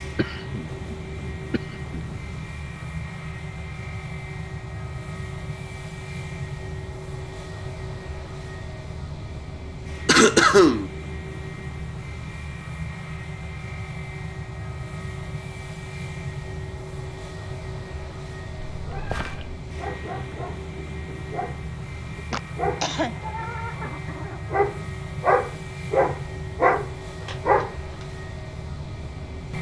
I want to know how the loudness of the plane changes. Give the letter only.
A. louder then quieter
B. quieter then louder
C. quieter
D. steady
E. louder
D.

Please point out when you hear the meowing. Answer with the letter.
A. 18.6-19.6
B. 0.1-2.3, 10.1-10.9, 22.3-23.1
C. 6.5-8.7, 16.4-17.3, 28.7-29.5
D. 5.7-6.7
A.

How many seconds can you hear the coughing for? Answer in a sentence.
You can hear the coughing for 4 seconds altogether.